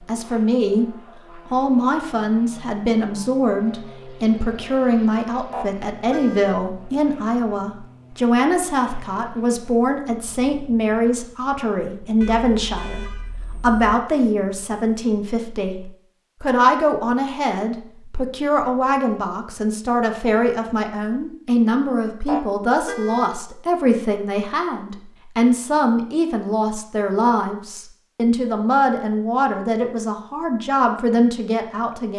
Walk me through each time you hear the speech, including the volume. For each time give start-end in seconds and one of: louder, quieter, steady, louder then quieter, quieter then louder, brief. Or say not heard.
0.1-32.1 steady.